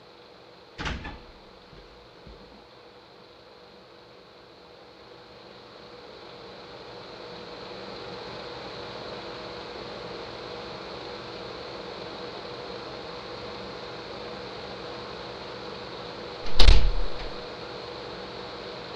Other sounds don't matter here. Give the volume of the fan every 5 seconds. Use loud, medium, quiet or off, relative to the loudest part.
quiet, loud, loud, loud.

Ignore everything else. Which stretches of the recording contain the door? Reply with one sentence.
The door can be heard from 0.8 to 2.5 s and from 16.4 to 17.3 s.